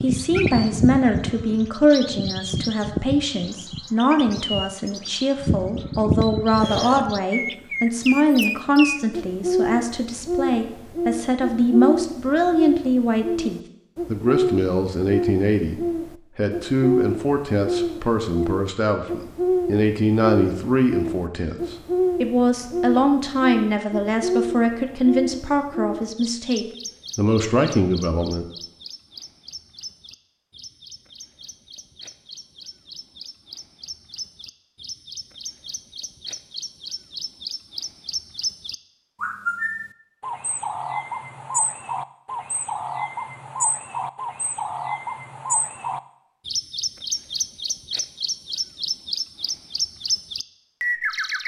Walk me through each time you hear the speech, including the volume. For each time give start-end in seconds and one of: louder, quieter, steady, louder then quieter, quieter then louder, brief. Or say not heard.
0.0-28.4 steady.